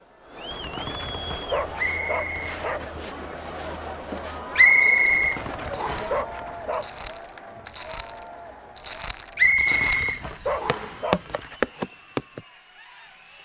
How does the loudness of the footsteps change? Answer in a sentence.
The loudness of the footsteps goes up.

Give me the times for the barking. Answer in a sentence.
The barking can be heard from 0.5 to 3.0 s, from 5.0 to 6.8 s and from 9.4 to 11.6 s.